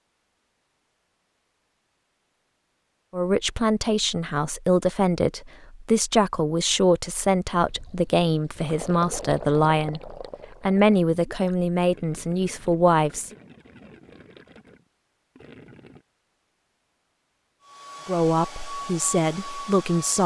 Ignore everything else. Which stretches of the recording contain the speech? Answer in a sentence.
The speech can be heard from 3.1 to 13.3 s and from 18.1 to 20.2 s.